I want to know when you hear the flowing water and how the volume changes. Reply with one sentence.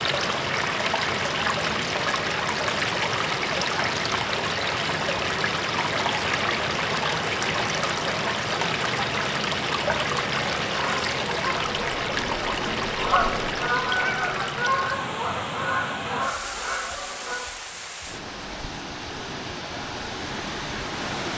The flowing water can be heard from 0.0 to 21.3 s, getting quieter.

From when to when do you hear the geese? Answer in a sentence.
The geese can be heard from 10.7 to 17.4 s.